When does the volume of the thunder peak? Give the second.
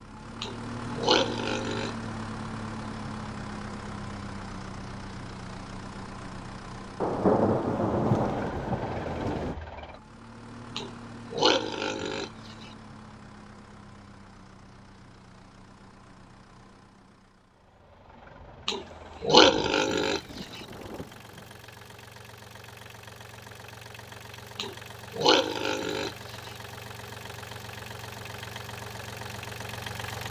7 s.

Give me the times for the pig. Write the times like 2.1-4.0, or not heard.
0.4-1.9, 10.8-12.3, 18.6-20.2, 24.6-26.5.